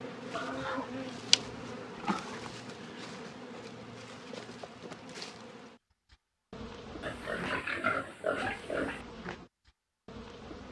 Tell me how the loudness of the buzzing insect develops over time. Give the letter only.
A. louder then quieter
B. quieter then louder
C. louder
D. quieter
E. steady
D.